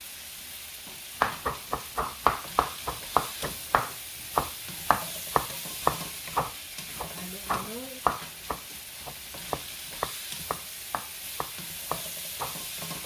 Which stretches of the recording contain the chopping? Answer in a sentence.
The chopping can be heard from 1.2 to 13.0 s.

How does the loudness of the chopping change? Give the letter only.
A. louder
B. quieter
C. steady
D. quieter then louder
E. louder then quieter
B.